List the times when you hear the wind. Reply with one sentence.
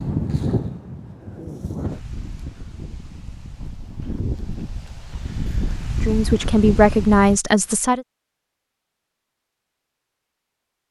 You can hear the wind from 0.0 to 7.4 s.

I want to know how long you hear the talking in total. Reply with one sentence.
You can hear the talking for 2 seconds altogether.